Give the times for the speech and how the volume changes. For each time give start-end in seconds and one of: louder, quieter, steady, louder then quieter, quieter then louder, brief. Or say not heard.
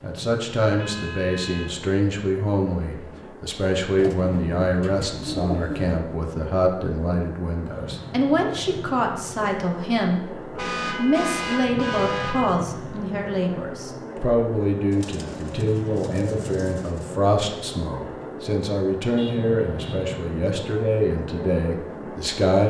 0.0-22.6 steady.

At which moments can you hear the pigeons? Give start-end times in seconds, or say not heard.
4.0-6.0, 14.9-17.1.